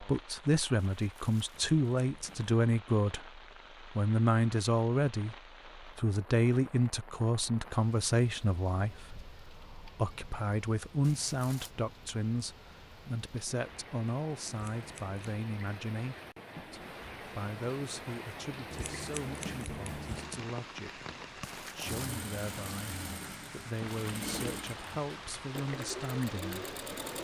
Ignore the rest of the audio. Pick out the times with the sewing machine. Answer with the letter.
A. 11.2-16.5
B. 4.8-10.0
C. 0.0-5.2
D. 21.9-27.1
D.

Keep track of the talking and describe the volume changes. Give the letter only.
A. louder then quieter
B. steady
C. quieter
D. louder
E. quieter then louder
C.